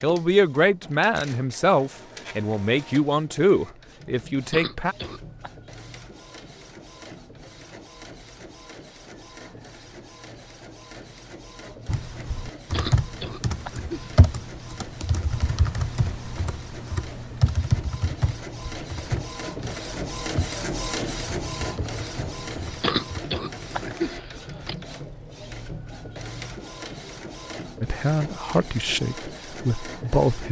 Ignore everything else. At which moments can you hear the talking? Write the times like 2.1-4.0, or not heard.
0.0-5.0, 27.8-30.4.